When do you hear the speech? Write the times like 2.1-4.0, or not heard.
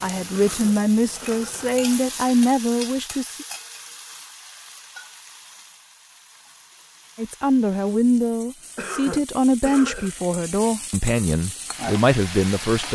0.0-3.5, 7.2-12.9.